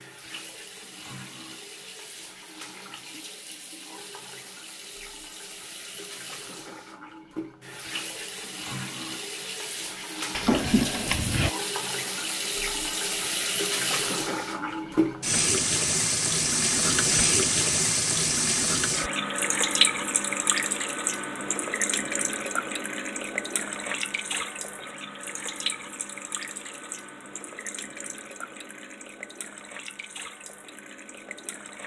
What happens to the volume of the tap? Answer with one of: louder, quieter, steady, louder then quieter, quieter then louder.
louder then quieter.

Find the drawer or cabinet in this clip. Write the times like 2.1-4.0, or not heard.
10.3-11.6.